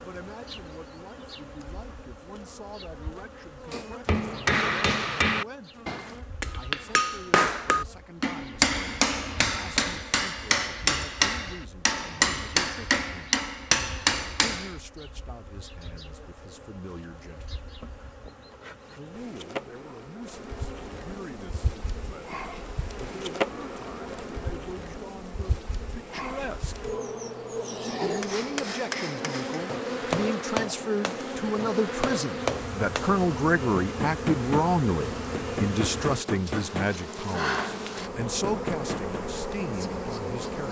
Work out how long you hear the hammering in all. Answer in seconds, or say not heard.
22 s.